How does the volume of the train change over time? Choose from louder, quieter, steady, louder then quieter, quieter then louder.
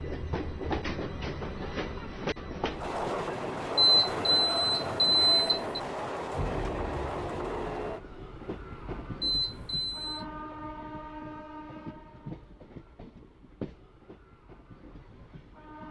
quieter.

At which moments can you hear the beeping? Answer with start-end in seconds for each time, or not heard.
3.8-5.7, 9.2-10.2.